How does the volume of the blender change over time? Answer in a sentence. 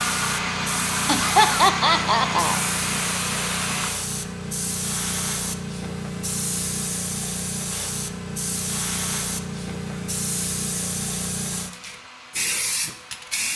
The volume of the blender goes down.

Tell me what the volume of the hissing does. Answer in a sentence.
The volume of the hissing stays about the same.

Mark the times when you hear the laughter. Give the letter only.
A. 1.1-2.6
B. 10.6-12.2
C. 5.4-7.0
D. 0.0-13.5
A.